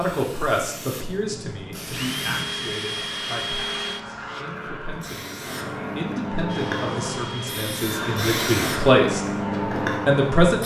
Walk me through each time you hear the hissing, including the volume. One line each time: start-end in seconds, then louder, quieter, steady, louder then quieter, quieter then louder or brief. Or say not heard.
0.0-10.6 louder.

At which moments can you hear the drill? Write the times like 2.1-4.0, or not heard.
1.8-4.5, 6.5-8.2.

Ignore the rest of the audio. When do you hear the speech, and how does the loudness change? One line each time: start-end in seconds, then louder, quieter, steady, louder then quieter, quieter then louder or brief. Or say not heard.
0.0-9.2 quieter then louder
9.8-10.6 brief.